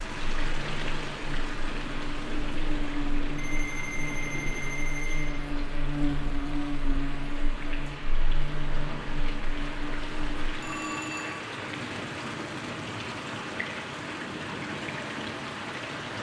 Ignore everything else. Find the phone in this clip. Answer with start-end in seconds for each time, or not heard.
3.4-5.3, 10.5-11.3.